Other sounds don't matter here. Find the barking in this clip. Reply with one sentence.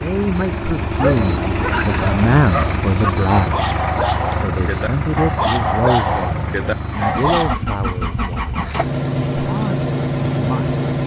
You can hear the barking from 0.9 to 7.5 s.